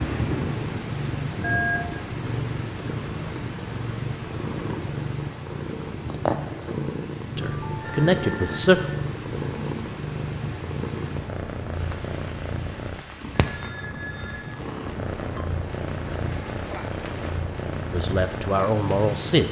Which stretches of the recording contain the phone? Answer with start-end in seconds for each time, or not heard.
1.4-1.8, 7.4-8.8, 13.3-14.6.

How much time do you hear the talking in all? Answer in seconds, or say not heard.
3 s.